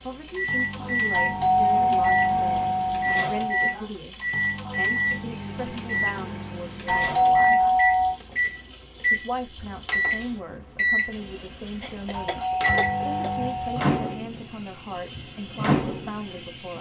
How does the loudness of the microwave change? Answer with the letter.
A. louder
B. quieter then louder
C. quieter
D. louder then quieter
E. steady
E.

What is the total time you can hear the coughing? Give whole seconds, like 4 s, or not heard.
2 s.